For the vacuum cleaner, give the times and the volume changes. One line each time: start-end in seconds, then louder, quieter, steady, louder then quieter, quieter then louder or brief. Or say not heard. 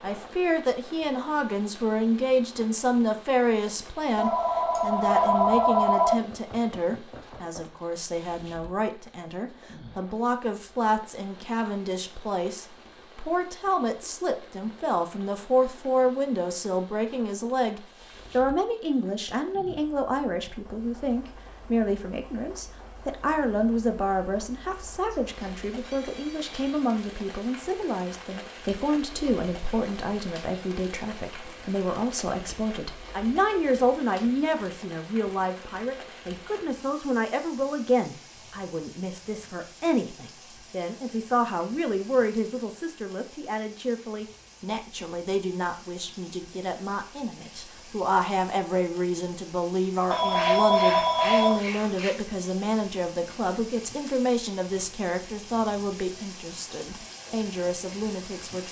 not heard.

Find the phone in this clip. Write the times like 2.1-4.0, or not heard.
4.2-6.2, 25.1-26.9, 50.1-52.1.